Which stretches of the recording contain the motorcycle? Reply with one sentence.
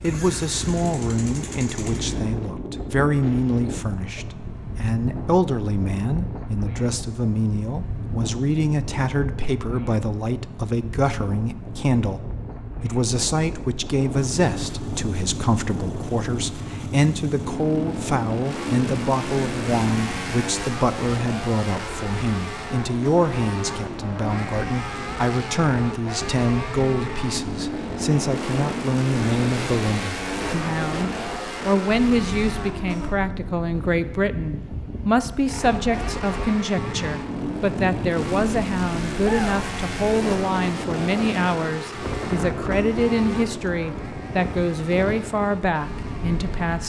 You can hear the motorcycle from 0.0 to 2.2 s, from 14.1 to 33.1 s and from 35.5 to 46.8 s.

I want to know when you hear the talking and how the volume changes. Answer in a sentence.
You can hear the talking from 0.0 to 46.8 s, at a steady volume.